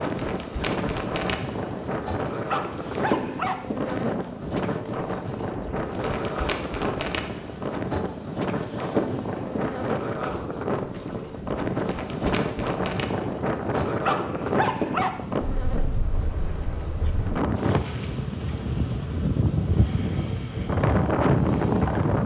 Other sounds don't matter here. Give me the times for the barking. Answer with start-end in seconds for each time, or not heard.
2.5-3.6, 14.0-15.2.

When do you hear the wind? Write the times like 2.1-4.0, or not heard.
0.0-22.2.